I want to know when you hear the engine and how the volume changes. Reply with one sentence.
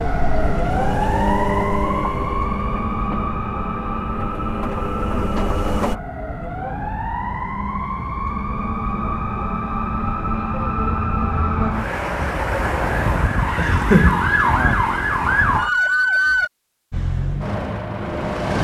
You can hear the engine from 0.0 to 6.0 s, getting quieter then louder; and briefly from 16.9 to 18.5 s.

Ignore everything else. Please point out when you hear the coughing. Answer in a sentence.
You can hear the coughing from 13.6 to 14.5 s.